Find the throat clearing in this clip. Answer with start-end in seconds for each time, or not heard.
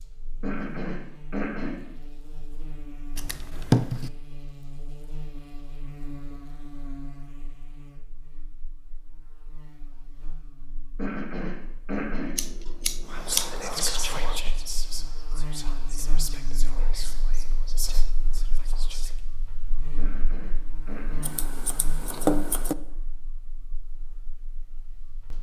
0.4-1.8, 10.9-12.3, 19.9-21.2.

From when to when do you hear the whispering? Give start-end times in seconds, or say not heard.
13.1-19.2.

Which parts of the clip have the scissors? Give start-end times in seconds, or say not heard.
3.1-4.1, 12.3-13.6, 21.2-22.8.